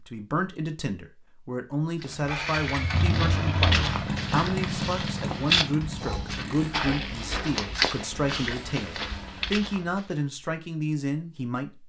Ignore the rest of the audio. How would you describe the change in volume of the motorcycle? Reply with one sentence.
The loudness of the motorcycle goes down.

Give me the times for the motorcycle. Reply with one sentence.
You can hear the motorcycle from 2.0 to 9.6 s.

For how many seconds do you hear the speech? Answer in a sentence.
The speech can be heard for 12 seconds in total.